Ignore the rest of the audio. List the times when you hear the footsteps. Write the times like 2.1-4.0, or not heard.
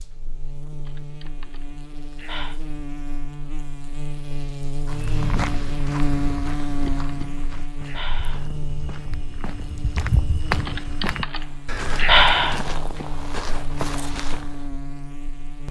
4.8-14.7.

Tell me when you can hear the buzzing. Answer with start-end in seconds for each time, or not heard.
0.0-15.6.